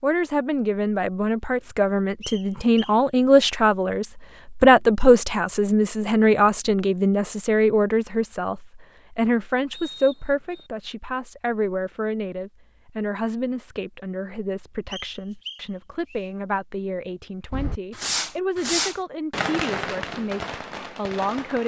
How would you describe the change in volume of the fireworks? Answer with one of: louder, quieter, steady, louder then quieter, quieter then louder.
quieter.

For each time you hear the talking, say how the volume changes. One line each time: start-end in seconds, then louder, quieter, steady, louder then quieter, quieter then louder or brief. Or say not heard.
0.0-21.6 quieter.